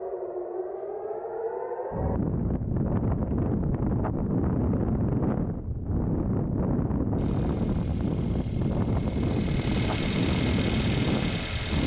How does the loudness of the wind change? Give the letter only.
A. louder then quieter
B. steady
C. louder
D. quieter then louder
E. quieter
B.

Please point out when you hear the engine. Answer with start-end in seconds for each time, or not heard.
7.2-11.8.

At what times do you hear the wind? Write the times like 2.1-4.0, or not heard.
1.9-11.8.